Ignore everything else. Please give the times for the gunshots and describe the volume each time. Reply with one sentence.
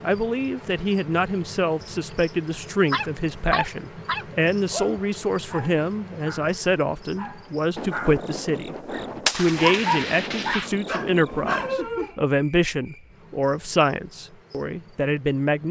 The gunshots can be heard from 7.8 to 11.8 s, getting louder then quieter.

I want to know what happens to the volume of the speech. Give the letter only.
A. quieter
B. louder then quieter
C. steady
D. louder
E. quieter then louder
C.